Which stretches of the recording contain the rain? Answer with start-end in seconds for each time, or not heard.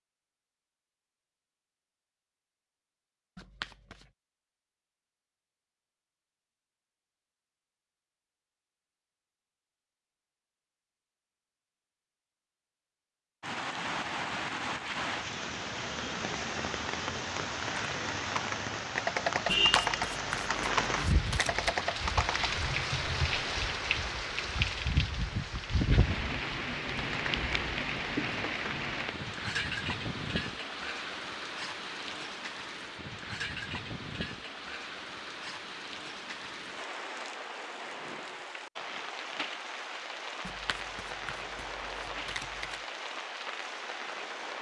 13.4-44.5.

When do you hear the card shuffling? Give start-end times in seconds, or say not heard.
3.4-4.1, 19.4-21.8, 40.5-42.8.